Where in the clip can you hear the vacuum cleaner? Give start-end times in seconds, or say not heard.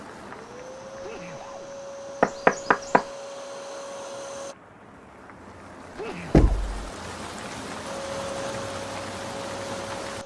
0.2-4.5, 7.8-10.2.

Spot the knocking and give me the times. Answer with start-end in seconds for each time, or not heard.
2.2-3.0, 6.3-6.8.